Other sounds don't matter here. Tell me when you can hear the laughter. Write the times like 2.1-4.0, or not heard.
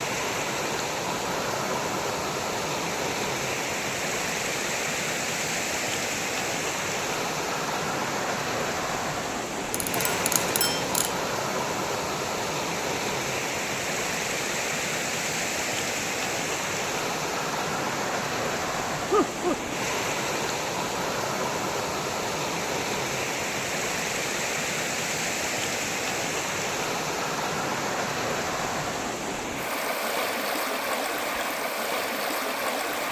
19.1-19.8.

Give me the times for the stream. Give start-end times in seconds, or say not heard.
0.0-33.0.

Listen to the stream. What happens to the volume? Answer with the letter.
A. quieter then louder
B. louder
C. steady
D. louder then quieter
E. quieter
C.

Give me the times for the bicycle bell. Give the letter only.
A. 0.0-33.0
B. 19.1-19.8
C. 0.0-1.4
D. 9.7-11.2
D.